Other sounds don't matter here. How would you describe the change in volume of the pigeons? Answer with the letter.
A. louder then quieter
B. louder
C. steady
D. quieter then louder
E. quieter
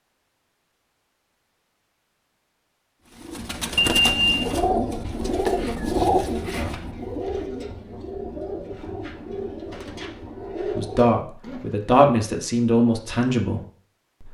E.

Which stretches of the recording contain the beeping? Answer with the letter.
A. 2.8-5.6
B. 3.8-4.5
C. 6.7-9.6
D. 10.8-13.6
B.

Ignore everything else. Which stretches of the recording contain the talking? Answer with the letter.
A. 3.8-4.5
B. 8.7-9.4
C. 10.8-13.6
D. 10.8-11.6
C.